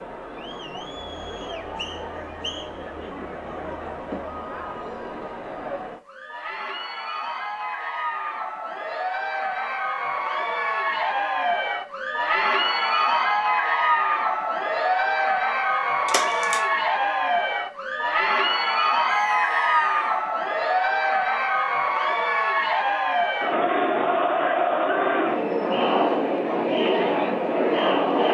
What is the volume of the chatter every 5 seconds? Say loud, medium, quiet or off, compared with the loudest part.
quiet, medium, loud, loud, loud, loud.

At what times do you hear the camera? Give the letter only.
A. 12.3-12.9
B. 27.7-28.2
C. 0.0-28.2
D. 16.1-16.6
D.